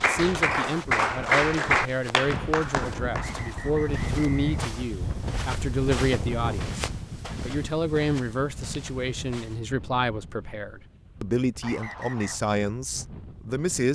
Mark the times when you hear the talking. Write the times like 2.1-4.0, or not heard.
0.1-13.8.